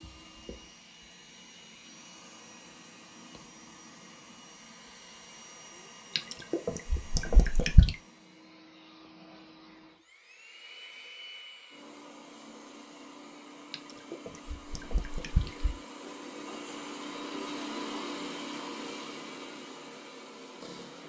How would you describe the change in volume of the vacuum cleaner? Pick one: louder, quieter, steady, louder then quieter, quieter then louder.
louder.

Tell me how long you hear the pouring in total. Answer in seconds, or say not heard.
4 s.